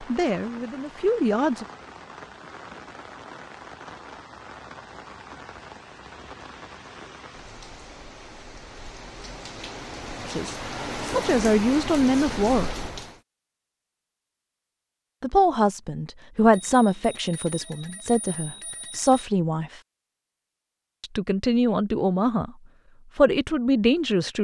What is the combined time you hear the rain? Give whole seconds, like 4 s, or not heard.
13 s.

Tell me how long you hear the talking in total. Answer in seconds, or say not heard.
11 s.